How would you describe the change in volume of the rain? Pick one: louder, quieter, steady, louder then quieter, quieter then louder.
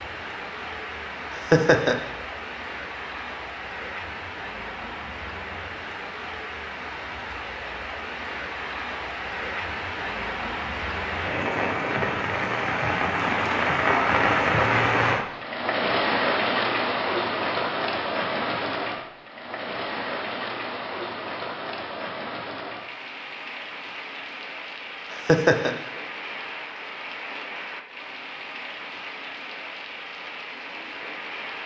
louder then quieter.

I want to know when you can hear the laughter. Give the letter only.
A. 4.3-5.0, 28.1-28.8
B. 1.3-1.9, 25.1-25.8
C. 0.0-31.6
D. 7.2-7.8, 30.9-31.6
B.